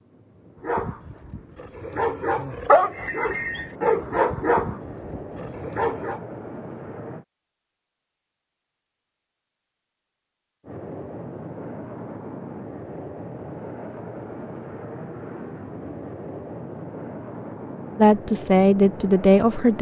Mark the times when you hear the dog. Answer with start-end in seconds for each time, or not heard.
0.6-6.2.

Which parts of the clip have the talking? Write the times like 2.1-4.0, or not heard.
17.9-19.7.